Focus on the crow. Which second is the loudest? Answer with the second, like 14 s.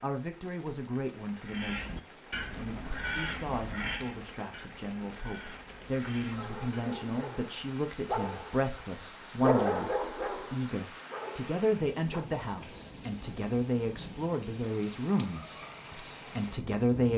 3 s.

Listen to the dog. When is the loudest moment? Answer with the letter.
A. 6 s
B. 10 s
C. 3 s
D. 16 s
B.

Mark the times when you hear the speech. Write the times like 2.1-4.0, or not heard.
0.0-17.1.